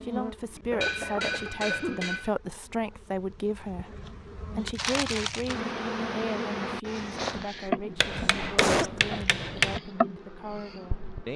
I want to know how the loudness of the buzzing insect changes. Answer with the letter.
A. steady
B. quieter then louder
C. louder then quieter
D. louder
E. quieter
D.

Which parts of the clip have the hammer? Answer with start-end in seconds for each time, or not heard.
0.8-2.4, 8.0-9.8.